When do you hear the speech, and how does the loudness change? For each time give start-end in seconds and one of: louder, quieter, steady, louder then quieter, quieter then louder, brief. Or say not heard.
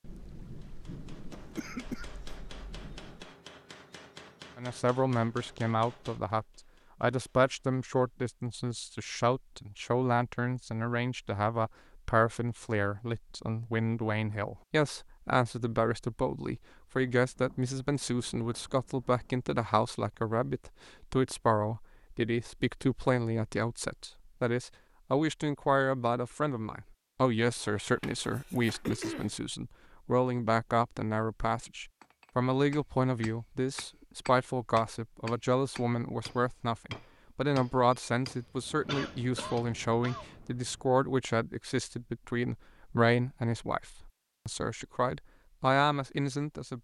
4.5-46.8 steady.